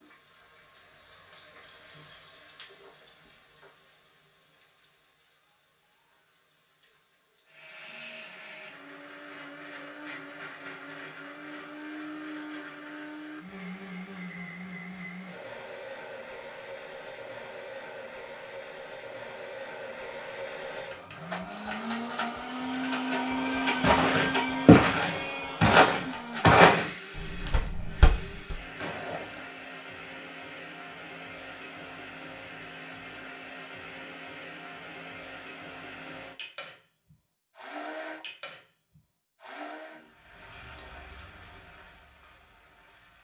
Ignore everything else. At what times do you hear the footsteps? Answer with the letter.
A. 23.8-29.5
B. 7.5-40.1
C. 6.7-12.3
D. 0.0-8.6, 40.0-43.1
A.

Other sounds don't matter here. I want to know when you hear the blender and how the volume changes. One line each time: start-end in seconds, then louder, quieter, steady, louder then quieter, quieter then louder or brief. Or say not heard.
7.5-40.1 louder then quieter.